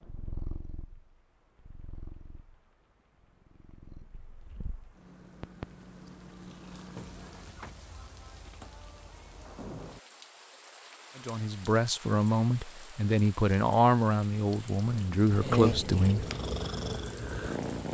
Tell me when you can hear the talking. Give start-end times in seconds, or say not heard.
11.2-16.2.